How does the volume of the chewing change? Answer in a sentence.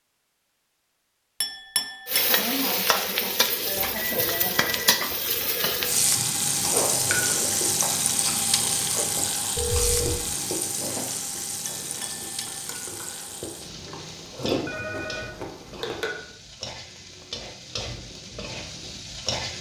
The volume of the chewing goes down, then up.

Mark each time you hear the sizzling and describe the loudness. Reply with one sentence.
The sizzling can be heard from 2.0 to 19.5 s, getting quieter.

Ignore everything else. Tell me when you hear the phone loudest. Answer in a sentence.
The volume of the phone peaks at 10 seconds.